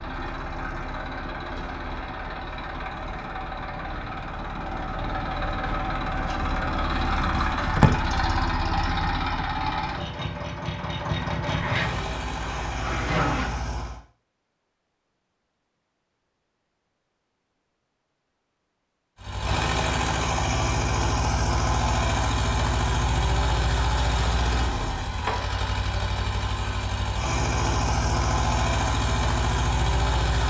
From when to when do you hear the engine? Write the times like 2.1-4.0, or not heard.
0.0-14.0, 19.2-30.4.